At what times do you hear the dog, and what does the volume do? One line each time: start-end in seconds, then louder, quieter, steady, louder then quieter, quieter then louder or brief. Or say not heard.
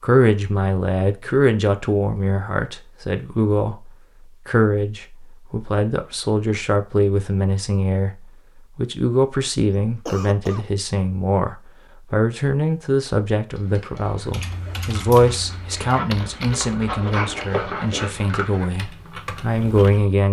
13.5-18.7 louder.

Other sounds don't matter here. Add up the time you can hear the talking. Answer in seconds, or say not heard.
20 s.